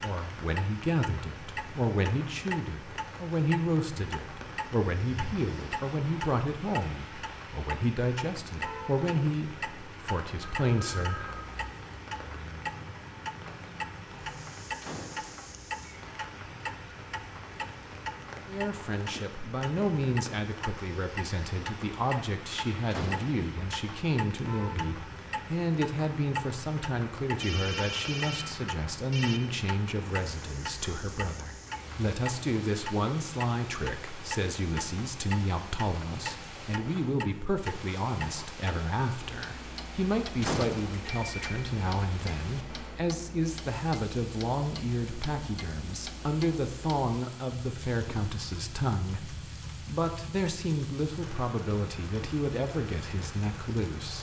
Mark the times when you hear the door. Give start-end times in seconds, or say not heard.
14.8-15.4, 22.9-23.5, 40.4-41.0.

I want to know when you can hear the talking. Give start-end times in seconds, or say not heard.
0.0-11.3, 18.4-54.1.